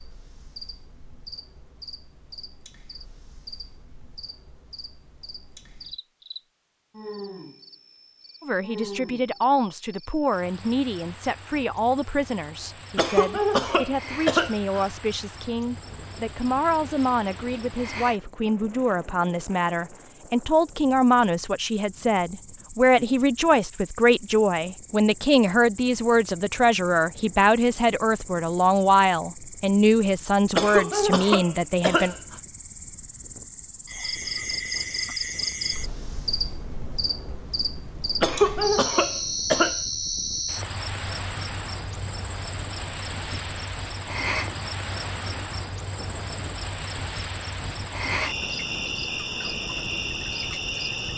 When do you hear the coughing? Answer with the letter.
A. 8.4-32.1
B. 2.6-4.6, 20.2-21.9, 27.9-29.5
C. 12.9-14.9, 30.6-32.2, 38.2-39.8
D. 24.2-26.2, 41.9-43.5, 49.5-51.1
C.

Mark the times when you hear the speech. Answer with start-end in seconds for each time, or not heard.
8.4-32.1.